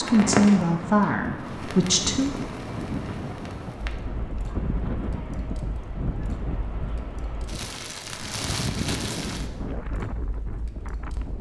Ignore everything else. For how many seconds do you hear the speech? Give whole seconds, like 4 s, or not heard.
2 s.